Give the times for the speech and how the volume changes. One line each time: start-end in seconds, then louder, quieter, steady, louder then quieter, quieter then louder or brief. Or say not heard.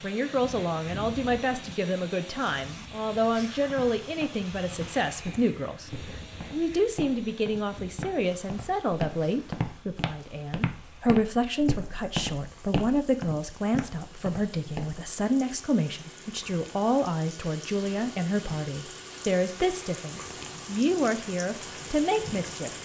0.0-5.9 steady
6.5-22.7 steady.